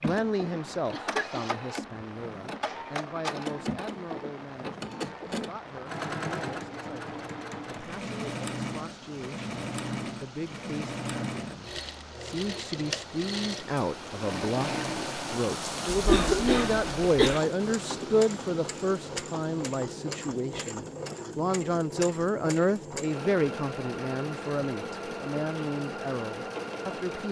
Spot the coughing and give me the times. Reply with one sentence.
You can hear the coughing from 0.9 to 1.4 s and from 15.9 to 17.4 s.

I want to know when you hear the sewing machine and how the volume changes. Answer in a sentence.
The sewing machine can be heard from 0.0 to 27.2 s, at a steady volume.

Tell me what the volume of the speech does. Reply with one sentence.
The volume of the speech goes down, then up.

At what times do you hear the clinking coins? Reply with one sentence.
The clinking coins can't be heard in this clip.